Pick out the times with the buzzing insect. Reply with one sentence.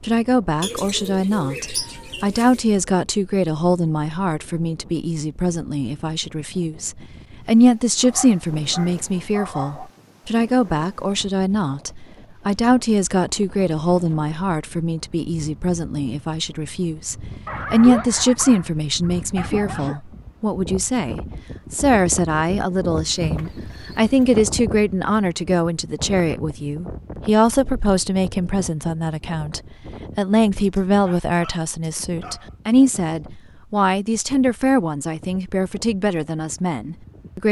The buzzing insect can't be heard in this clip.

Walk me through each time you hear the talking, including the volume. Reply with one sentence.
You can hear the talking from 0.0 to 37.4 s, at a steady volume.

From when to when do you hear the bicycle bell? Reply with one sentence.
The bicycle bell can't be heard in this clip.